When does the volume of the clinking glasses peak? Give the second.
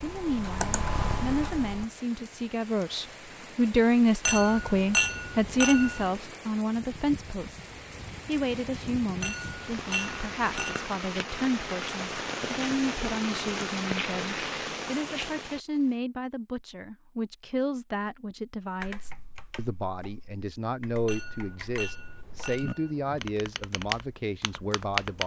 5 s.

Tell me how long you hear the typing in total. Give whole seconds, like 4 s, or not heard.
8 s.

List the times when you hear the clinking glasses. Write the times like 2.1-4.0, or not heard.
4.2-6.2, 9.2-10.9, 21.1-23.2.